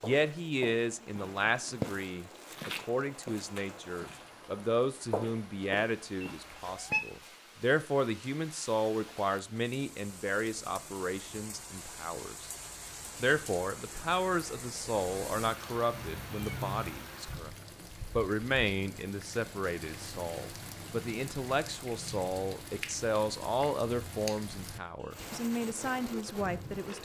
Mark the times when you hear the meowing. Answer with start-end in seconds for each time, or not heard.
6.2-7.0, 15.9-17.1.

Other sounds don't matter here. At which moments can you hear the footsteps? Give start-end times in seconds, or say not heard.
0.0-7.0.